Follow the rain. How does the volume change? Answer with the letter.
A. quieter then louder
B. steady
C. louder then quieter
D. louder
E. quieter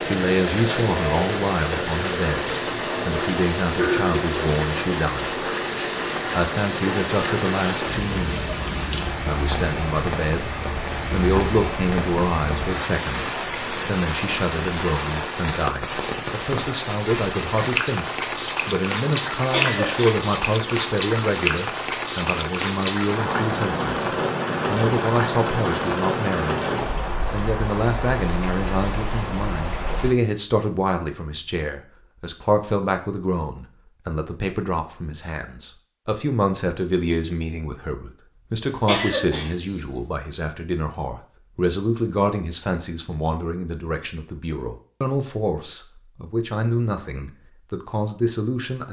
B.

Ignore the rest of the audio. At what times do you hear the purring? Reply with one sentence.
You can't hear the purring here.